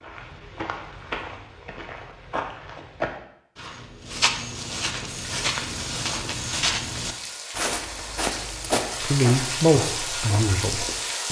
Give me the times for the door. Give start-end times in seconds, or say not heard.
not heard.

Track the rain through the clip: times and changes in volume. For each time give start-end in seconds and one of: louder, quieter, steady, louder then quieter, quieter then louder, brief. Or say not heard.
5.0-11.2 louder.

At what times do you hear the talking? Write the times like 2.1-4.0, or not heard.
9.0-11.2.